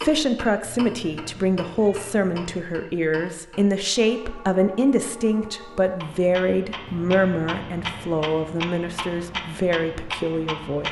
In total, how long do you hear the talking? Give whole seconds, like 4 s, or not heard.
11 s.